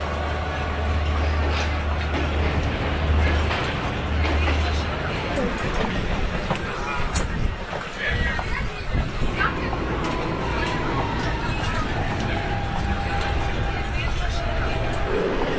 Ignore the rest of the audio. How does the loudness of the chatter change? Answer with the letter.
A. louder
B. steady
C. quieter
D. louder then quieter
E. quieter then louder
B.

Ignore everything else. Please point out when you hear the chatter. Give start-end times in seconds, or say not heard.
0.0-15.5.